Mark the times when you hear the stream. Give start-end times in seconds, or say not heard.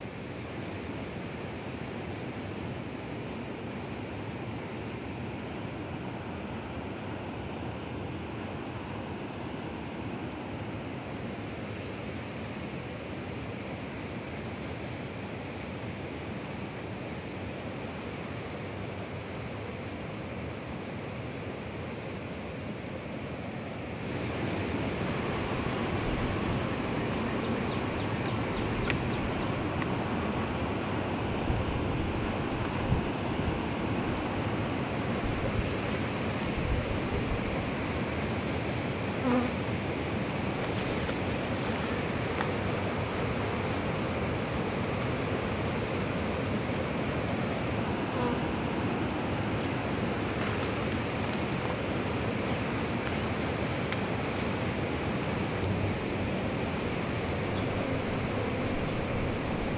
0.0-59.7.